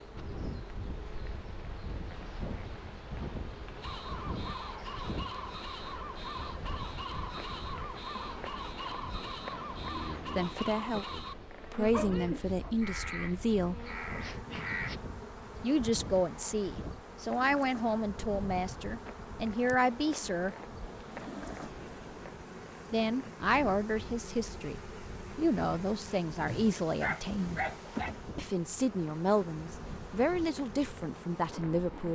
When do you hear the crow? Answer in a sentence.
You can hear the crow from 3.8 to 15.0 s.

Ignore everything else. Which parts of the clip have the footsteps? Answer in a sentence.
The footsteps can't be heard in this clip.